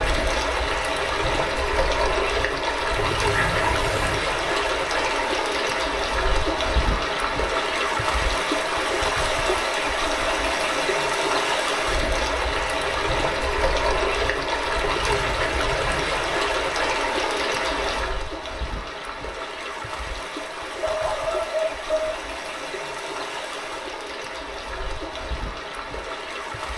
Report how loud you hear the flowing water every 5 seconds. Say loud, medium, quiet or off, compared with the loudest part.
loud, loud, loud, loud, medium, medium.